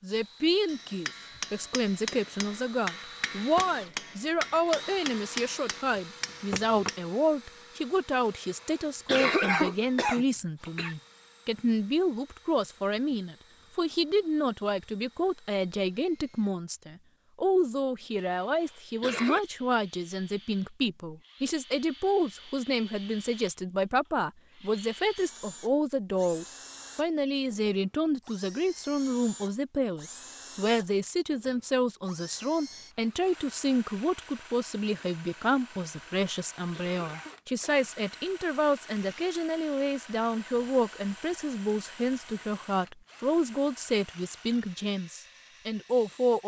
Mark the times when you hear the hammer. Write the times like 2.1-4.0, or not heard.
0.7-7.0.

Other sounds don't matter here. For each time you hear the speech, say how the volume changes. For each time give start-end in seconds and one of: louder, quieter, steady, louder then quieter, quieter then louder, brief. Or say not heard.
0.0-46.4 steady.